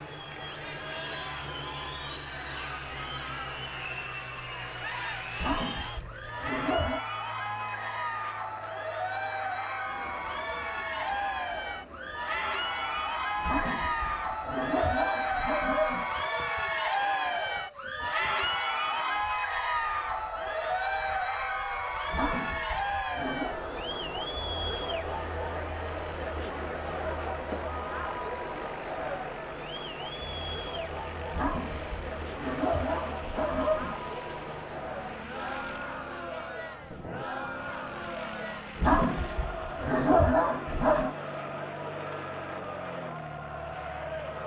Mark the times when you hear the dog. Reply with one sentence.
The dog can be heard from 5.3 to 7.0 s, from 13.4 to 16.1 s, from 22.1 to 23.6 s, from 31.3 to 34.0 s and from 38.8 to 41.1 s.